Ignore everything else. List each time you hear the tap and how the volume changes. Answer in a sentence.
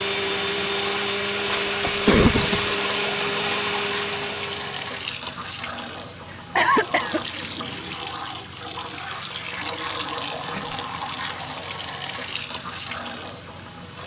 You can hear the tap from 0.0 to 14.0 s, at a steady volume.